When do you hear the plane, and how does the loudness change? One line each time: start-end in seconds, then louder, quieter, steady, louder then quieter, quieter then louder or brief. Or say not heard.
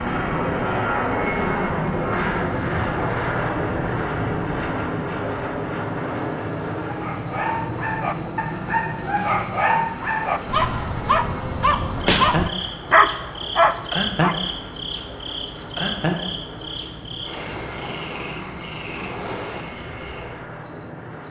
0.0-21.2 quieter.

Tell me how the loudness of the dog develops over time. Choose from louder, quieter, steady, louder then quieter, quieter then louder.
louder.